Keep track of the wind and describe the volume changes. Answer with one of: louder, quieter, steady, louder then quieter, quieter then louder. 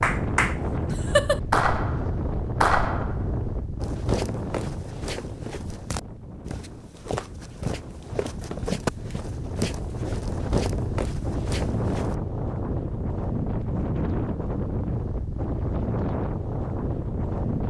quieter then louder.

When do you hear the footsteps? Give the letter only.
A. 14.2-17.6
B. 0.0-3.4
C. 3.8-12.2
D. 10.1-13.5
C.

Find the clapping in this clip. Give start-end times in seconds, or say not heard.
0.0-3.4.